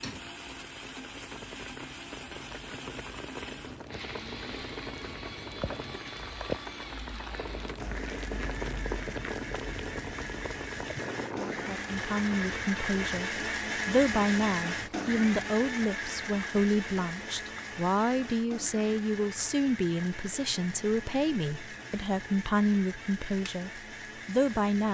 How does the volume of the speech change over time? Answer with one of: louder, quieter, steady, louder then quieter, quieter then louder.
steady.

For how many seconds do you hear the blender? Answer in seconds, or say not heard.
25 s.